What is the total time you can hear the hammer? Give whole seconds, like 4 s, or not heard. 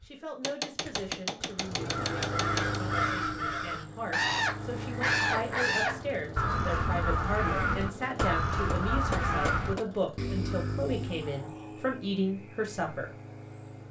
4 s.